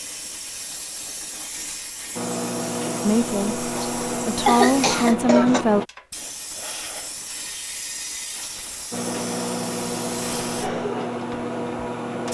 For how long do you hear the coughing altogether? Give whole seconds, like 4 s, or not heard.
2 s.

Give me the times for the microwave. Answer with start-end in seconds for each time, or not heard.
2.1-5.8, 8.9-12.3.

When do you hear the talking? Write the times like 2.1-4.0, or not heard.
3.0-5.8.